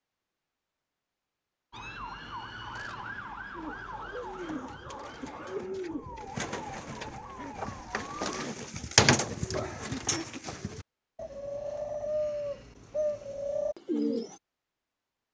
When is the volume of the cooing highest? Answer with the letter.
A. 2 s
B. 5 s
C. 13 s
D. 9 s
D.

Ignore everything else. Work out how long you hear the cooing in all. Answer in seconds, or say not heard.
11 s.